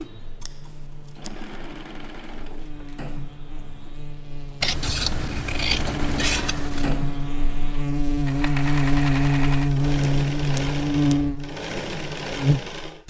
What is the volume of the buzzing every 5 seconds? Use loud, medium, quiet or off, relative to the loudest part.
quiet, loud, loud.